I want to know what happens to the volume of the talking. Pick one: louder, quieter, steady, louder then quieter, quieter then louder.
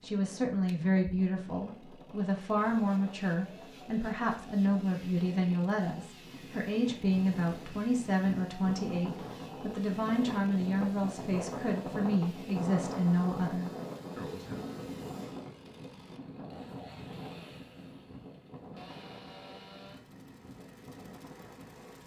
steady.